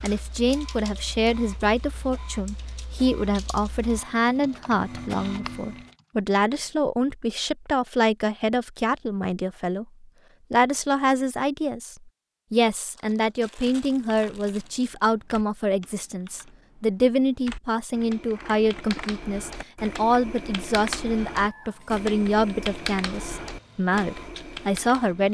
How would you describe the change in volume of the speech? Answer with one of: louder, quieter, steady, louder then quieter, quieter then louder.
steady.